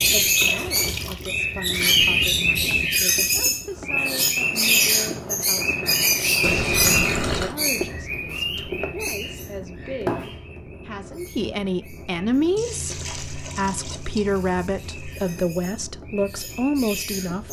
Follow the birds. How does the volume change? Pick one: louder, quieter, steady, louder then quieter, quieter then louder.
quieter.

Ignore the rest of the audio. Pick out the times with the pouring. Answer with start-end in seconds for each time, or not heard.
0.3-1.9, 6.4-7.5, 12.6-15.3.